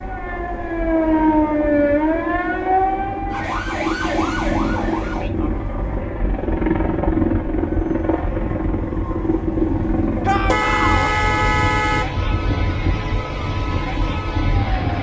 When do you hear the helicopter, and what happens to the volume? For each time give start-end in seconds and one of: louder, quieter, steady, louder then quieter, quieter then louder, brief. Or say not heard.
0.0-14.9 louder then quieter.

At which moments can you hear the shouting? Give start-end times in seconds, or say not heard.
10.2-11.2.